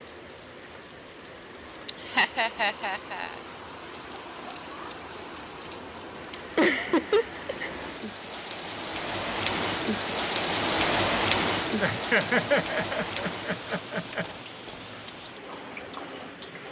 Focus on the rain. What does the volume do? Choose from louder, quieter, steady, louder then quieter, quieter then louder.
louder then quieter.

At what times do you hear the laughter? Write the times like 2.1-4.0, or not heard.
1.9-3.4, 6.5-7.7, 11.8-14.2.